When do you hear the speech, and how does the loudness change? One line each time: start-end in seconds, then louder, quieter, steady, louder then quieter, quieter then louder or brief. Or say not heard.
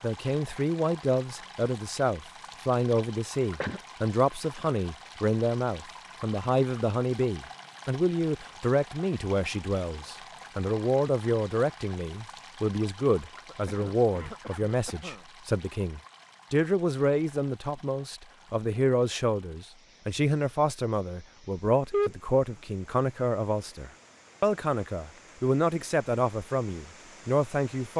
0.0-27.9 steady.